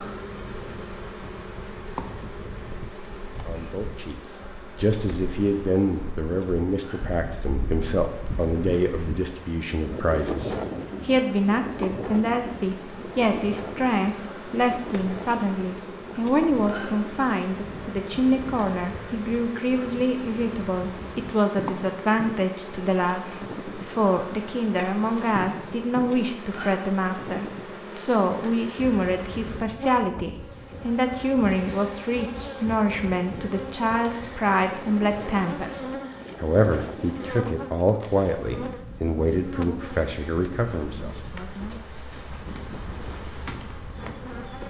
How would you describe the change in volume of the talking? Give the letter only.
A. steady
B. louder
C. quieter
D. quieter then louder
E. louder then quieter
A.